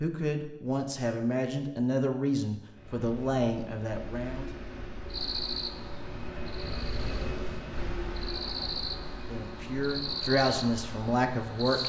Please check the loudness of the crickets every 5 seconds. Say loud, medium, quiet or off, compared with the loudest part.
off, loud, loud.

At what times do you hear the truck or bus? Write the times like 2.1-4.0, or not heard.
2.6-11.8.